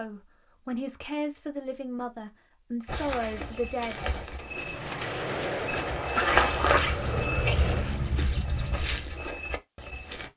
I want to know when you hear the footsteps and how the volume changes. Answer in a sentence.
The footsteps can be heard from 2.9 to 10.3 s, getting louder then quieter.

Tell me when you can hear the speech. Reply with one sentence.
You can hear the speech from 0.0 to 4.0 s.